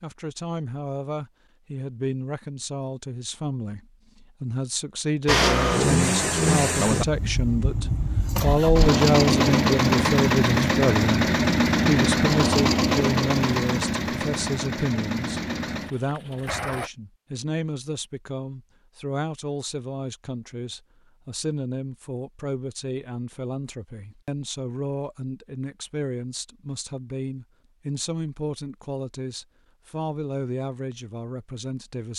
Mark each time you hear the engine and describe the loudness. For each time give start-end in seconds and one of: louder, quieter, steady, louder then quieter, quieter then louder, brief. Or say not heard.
5.2-16.9 quieter.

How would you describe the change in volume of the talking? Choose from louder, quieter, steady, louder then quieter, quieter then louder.
louder then quieter.